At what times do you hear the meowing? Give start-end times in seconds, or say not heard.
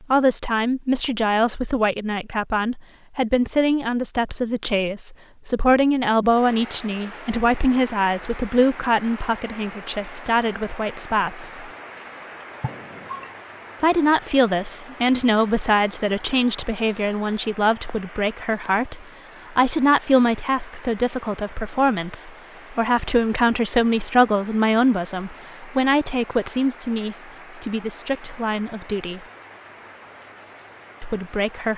12.6-13.3.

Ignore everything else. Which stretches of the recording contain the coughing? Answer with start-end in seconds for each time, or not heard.
not heard.